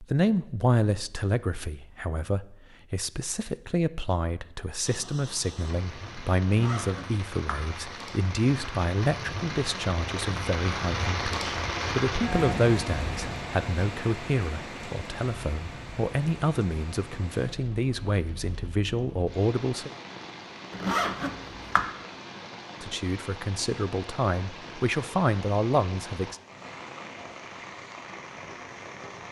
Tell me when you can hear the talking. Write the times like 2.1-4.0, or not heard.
0.0-19.9, 22.8-26.4.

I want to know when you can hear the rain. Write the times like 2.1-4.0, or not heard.
4.8-29.2.